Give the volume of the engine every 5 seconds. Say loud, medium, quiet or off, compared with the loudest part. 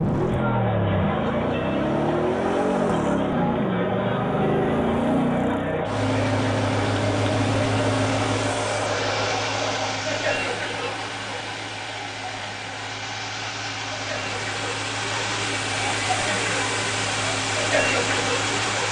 loud, loud, medium, loud.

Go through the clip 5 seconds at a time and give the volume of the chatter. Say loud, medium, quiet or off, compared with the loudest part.
loud, loud, medium, loud.